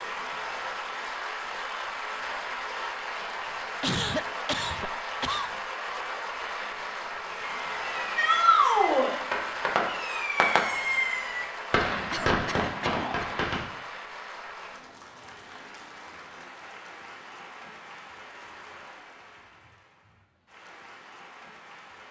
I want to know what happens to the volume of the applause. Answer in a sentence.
The volume of the applause goes down.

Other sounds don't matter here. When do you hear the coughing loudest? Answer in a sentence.
The volume of the coughing peaks at 4 seconds.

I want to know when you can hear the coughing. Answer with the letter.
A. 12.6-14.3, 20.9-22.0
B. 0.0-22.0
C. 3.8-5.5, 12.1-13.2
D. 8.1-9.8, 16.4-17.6
C.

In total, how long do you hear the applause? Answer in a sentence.
You can hear the applause for 22 seconds altogether.